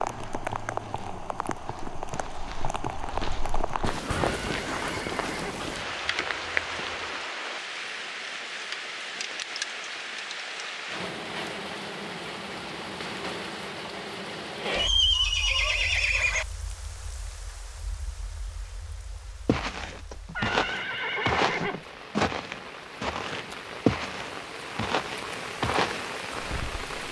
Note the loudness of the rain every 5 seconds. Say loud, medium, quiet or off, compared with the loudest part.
loud, loud, loud, quiet, medium, loud.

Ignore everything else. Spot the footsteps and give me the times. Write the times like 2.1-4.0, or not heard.
0.0-7.2, 19.4-26.9.